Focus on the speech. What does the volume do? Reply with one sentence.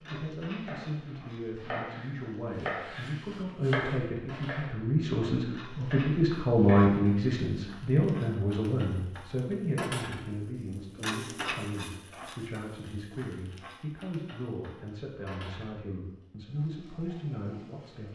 The loudness of the speech goes up, then down.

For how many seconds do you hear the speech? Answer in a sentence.
The speech can be heard for 18 seconds in total.